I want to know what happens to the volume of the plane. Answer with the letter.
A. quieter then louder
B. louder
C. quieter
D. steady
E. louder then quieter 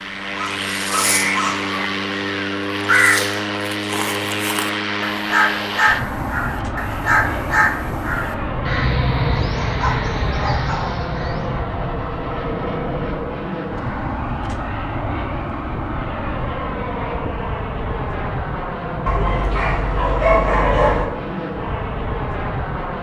D.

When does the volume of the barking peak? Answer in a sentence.
The loudest moment of the barking is at 20 seconds.